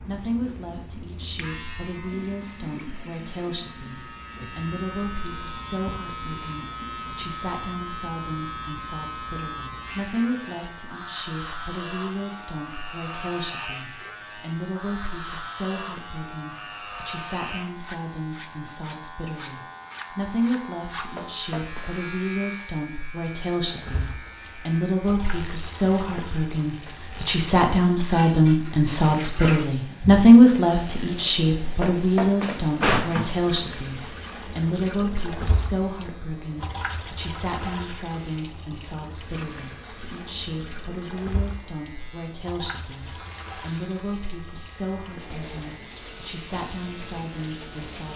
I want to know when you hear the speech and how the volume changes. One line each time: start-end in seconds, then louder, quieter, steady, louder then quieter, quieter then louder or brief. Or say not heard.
0.0-48.1 louder then quieter.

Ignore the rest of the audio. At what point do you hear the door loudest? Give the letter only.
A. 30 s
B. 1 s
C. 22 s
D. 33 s
D.